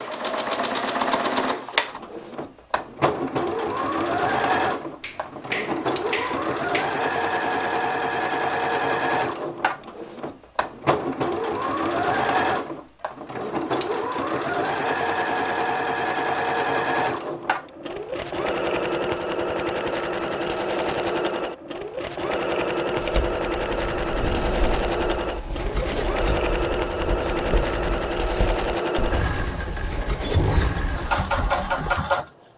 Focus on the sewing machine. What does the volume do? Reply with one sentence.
The loudness of the sewing machine stays about the same.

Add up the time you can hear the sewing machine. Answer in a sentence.
You can hear the sewing machine for 32 seconds altogether.